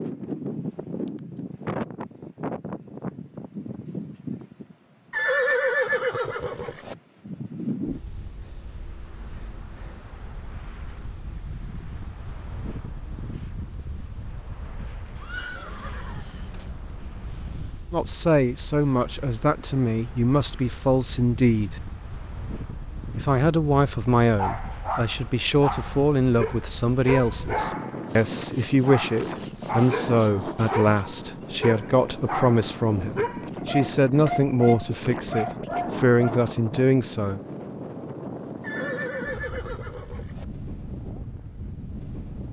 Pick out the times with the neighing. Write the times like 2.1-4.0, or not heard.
5.1-7.0, 15.2-16.6, 38.6-40.5.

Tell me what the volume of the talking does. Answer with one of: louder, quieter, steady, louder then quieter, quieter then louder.
steady.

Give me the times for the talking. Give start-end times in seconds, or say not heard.
17.9-21.8, 23.1-37.4.